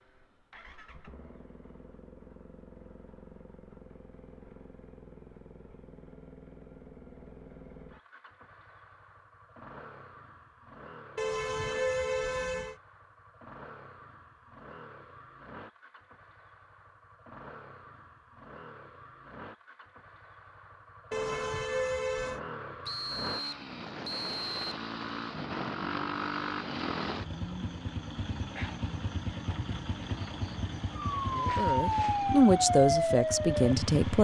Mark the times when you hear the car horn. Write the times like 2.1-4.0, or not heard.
11.2-12.8, 21.1-22.4.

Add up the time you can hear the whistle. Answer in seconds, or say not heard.
2 s.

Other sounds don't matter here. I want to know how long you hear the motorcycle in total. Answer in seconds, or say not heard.
34 s.